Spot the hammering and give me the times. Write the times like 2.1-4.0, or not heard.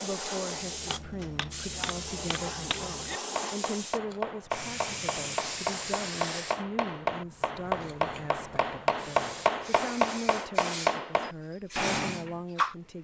0.6-12.4.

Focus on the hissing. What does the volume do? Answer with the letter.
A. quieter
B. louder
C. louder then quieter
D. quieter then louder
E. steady
D.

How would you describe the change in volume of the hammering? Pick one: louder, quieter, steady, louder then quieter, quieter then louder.
louder.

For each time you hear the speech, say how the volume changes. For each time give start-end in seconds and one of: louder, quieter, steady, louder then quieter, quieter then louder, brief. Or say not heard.
0.0-12.9 steady.